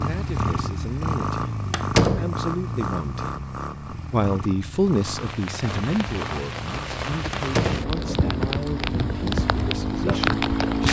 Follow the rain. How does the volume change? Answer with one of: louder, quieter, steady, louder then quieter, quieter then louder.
louder.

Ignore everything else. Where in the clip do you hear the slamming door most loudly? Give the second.
2 s.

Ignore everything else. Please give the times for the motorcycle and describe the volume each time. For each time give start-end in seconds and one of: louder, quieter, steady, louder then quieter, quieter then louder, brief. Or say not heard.
0.0-10.8 quieter then louder.